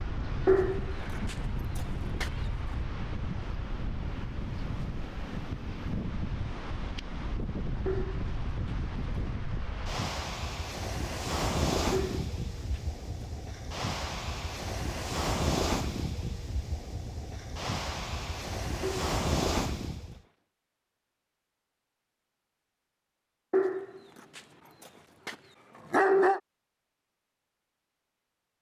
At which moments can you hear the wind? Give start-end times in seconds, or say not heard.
0.0-20.2.